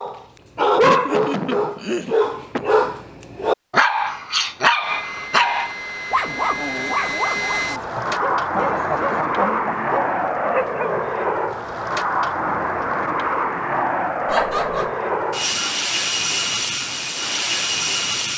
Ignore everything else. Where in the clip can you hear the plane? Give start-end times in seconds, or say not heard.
4.8-18.3.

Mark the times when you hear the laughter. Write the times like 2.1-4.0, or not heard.
0.8-2.6, 7.8-10.3, 14.2-14.9.